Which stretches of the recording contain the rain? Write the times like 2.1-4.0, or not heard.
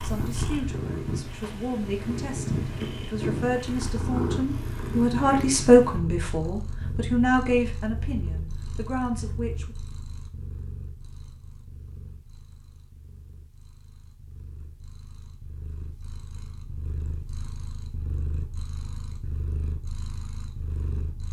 not heard.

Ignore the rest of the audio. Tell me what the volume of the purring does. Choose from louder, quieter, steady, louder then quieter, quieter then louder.
quieter then louder.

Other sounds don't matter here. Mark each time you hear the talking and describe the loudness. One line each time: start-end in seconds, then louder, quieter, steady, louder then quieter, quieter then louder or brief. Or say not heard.
0.0-9.8 louder then quieter.